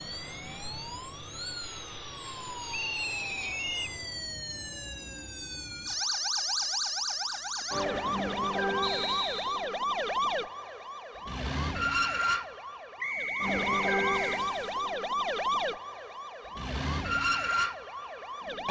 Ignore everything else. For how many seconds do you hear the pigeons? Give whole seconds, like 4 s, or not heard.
not heard.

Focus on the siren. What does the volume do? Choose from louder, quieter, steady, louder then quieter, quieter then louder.
louder.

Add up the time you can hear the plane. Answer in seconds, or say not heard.
4 s.